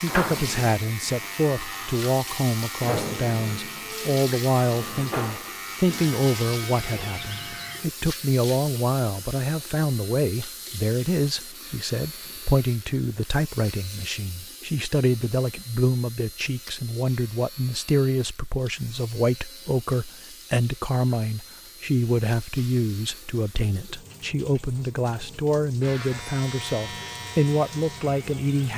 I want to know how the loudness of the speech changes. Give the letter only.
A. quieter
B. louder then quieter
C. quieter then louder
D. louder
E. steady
E.